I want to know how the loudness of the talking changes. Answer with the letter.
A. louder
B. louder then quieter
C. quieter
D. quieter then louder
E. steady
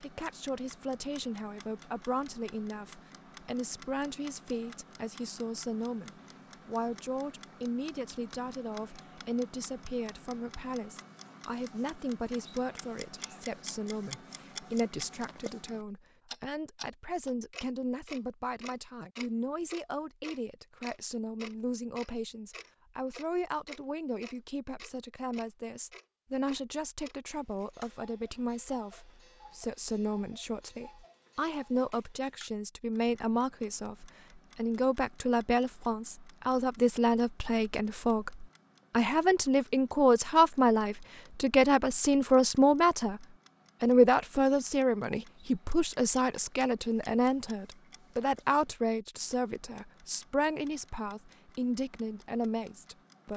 A.